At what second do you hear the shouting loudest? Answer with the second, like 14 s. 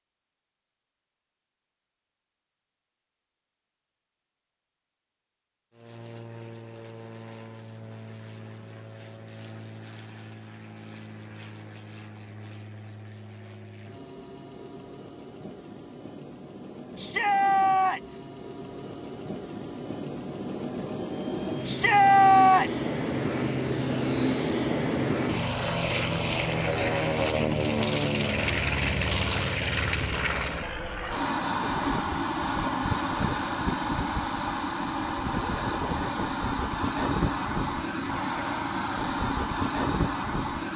22 s.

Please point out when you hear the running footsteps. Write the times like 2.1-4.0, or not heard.
not heard.